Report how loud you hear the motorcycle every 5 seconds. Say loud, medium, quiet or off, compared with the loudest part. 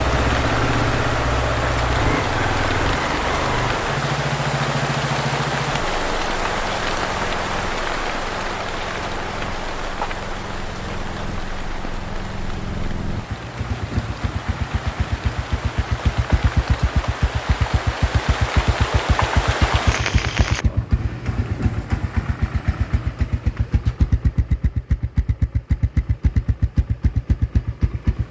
loud, medium, medium, loud, loud, loud.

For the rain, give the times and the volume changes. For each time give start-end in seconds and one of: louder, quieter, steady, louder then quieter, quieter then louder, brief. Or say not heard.
0.0-20.6 quieter then louder.